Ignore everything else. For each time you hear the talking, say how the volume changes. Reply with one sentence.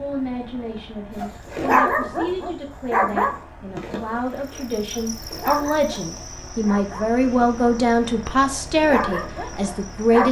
The talking can be heard from 0.0 to 10.2 s, getting louder.